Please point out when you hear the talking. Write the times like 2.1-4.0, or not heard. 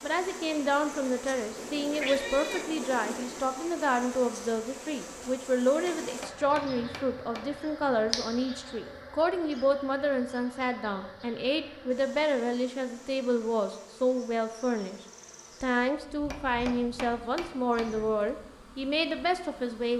0.0-15.0, 15.6-19.9.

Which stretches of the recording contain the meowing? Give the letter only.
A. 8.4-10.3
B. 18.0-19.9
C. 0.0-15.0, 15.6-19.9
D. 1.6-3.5
D.